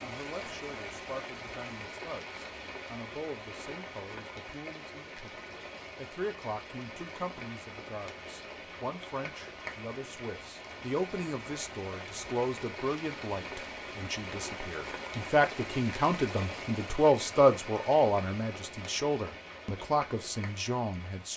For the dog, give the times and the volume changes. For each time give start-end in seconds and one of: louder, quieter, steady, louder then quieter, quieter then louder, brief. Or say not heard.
not heard.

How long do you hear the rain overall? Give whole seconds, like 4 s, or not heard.
21 s.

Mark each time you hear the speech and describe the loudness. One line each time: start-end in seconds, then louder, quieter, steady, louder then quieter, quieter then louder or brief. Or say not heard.
0.0-21.3 louder.